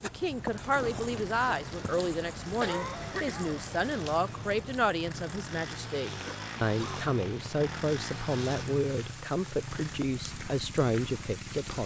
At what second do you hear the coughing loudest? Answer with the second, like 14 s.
3 s.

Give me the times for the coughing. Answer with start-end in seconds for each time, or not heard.
2.6-3.6, 6.2-7.0.